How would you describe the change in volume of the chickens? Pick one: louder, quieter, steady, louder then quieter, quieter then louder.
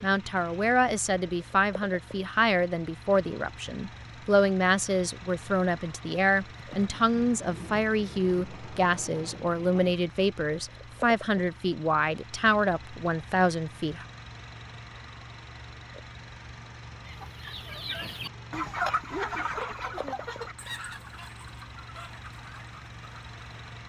louder then quieter.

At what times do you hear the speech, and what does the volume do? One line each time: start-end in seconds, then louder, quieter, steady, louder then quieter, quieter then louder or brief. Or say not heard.
0.0-14.1 steady.